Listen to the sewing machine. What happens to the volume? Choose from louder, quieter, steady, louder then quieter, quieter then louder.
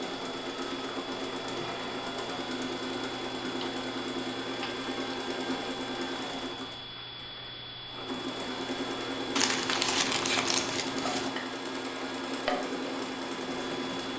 steady.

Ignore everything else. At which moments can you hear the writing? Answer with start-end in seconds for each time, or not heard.
not heard.